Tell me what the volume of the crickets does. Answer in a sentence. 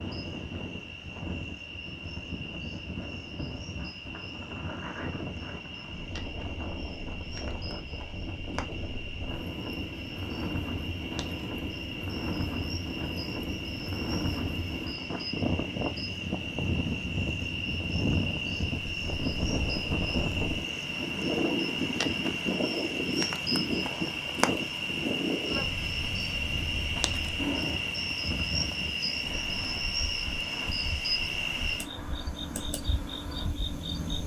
The loudness of the crickets goes up.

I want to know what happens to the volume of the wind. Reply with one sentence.
The volume of the wind goes up, then down.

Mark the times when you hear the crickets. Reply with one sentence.
The crickets can be heard from 0.0 to 34.2 s.